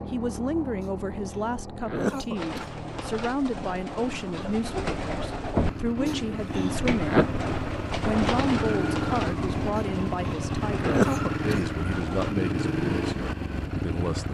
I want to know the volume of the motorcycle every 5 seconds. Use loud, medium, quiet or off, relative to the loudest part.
medium, loud, loud.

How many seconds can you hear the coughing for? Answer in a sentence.
The coughing can be heard for 3 seconds in total.